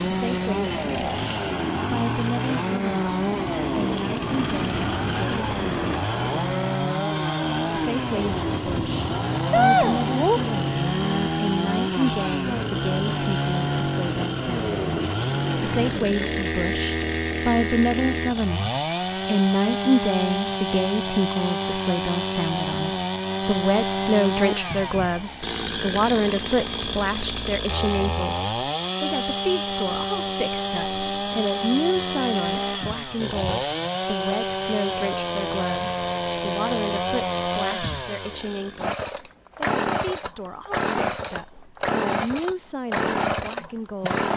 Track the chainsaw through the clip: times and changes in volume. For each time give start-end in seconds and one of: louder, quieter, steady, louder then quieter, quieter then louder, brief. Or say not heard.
0.0-44.3 steady.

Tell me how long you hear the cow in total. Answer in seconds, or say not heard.
2 s.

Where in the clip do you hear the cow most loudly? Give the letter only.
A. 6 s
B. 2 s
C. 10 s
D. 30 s
C.